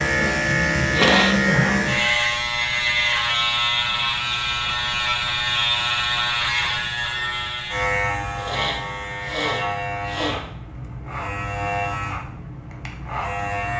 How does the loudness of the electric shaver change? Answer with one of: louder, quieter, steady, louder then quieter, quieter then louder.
quieter.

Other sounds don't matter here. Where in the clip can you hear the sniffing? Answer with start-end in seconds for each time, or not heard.
0.9-1.7, 8.3-10.4.